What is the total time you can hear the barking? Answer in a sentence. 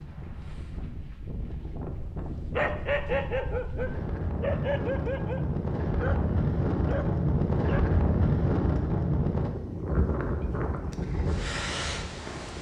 You can hear the barking for 5 seconds altogether.